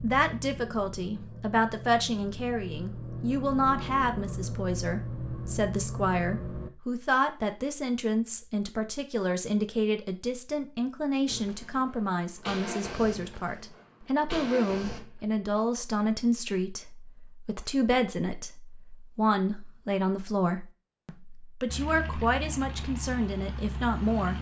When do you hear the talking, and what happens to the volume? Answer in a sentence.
The talking can be heard from 0.0 to 24.3 s, at a steady volume.